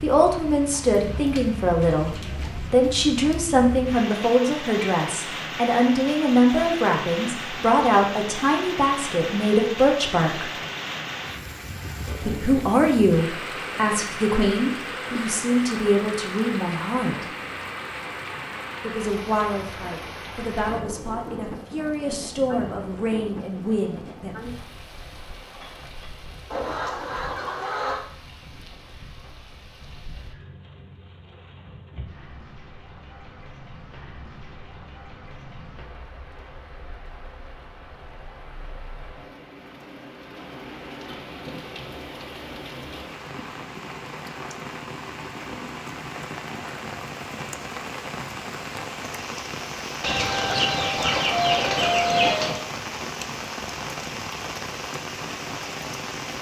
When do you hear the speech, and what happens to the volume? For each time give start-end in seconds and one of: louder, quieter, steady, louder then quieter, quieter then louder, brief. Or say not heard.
0.0-10.5 steady
12.2-17.2 quieter
18.8-24.6 steady.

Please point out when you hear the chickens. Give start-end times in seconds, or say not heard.
0.7-2.7, 26.5-28.1, 50.0-52.6.